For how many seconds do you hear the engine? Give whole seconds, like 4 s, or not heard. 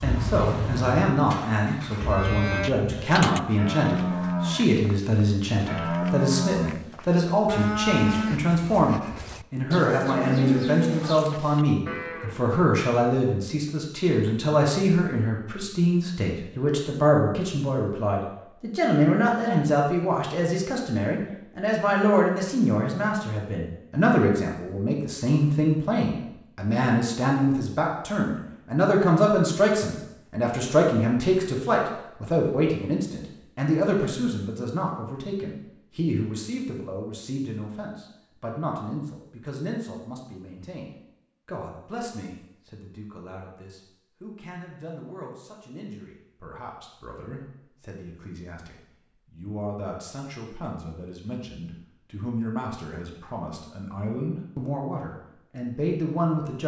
3 s.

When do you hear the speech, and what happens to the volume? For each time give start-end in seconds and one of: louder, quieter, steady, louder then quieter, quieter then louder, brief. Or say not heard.
0.0-56.6 quieter.